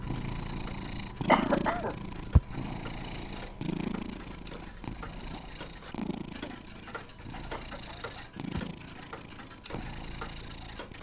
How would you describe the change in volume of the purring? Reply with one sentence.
The loudness of the purring goes down.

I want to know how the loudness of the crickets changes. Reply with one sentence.
The volume of the crickets goes down.